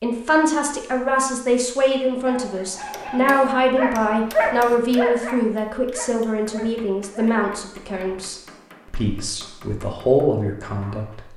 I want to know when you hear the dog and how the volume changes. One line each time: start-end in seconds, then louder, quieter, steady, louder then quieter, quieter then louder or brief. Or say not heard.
2.1-8.2 louder then quieter.